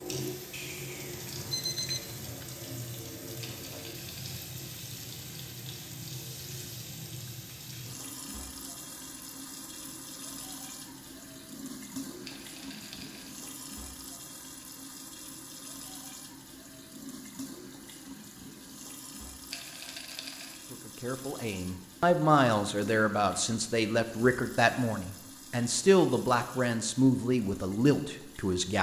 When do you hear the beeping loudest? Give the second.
2 s.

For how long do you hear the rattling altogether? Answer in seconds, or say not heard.
3 s.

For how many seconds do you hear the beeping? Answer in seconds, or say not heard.
2 s.